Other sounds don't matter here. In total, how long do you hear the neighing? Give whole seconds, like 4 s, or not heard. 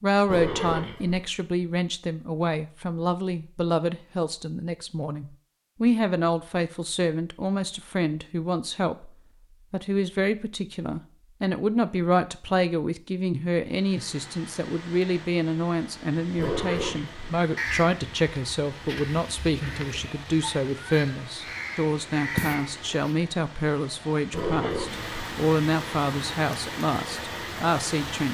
3 s.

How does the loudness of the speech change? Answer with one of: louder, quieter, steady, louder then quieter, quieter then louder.
steady.